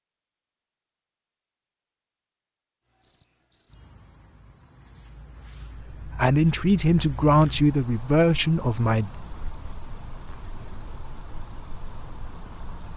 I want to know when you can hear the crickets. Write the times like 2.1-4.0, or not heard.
3.0-12.9.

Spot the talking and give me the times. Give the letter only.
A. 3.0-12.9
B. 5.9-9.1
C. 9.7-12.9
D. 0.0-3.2
B.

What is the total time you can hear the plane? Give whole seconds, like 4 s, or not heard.
not heard.